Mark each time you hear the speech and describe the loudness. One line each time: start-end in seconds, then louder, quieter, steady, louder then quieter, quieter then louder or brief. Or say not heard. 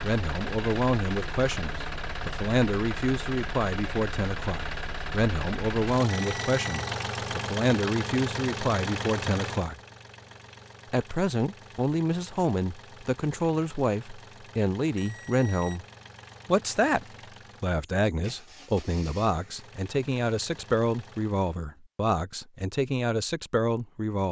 0.0-9.8 steady
10.9-15.8 steady
16.4-24.2 steady.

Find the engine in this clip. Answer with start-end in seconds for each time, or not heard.
0.0-21.5.